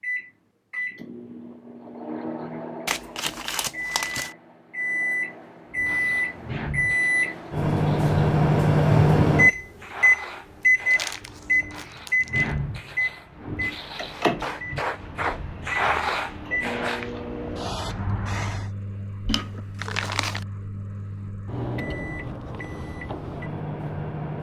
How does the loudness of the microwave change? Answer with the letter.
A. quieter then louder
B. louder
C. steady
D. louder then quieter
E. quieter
D.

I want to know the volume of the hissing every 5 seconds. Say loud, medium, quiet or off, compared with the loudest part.
off, medium, medium, loud, off.